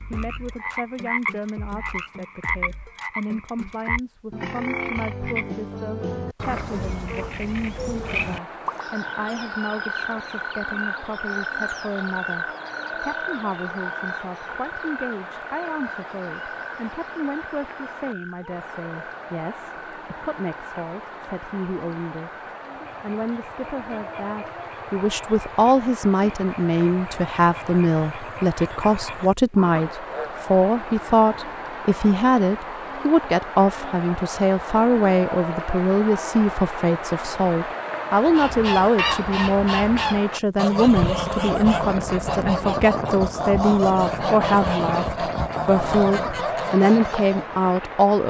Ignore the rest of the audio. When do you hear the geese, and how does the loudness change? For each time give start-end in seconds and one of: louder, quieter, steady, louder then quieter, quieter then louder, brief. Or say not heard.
38.1-47.6 steady.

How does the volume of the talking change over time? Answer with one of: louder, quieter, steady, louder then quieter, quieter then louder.
louder.